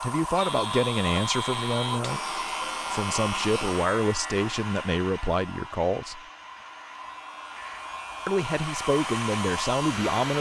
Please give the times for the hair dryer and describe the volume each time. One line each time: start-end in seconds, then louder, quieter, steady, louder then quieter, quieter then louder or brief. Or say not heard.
0.0-10.3 quieter then louder.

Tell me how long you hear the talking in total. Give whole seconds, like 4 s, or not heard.
8 s.